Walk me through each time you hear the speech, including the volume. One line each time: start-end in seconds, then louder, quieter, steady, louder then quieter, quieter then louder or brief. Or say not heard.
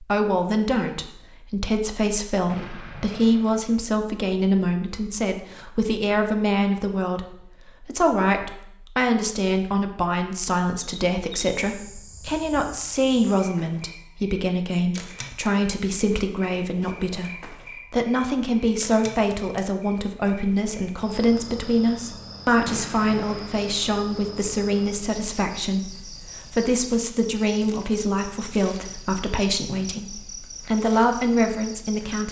0.0-32.2 steady.